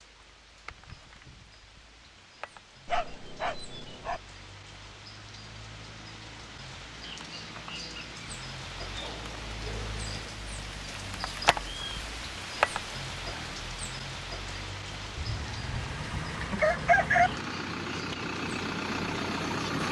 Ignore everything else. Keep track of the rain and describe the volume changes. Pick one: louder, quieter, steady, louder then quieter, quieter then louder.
louder then quieter.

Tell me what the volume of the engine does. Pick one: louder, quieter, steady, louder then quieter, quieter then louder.
louder.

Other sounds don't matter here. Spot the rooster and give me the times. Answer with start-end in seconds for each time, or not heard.
15.2-17.3.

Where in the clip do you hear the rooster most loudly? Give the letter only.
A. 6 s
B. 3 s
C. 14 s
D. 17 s
D.